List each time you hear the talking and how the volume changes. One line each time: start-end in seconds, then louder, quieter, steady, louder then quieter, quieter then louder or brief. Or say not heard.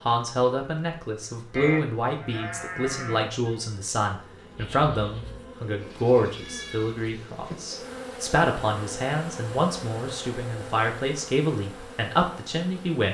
0.1-13.0 steady.